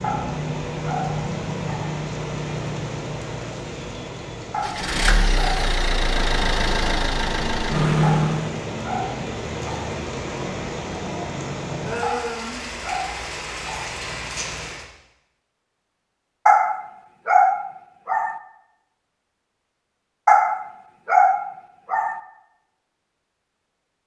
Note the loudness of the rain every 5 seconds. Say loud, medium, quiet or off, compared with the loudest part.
loud, loud, loud, off, off.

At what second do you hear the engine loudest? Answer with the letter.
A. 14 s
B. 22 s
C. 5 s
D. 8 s
D.